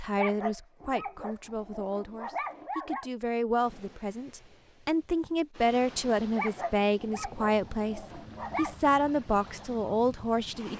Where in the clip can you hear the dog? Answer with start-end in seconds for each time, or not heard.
0.1-3.0, 6.3-8.8.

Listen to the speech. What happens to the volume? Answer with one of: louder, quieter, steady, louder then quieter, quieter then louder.
louder.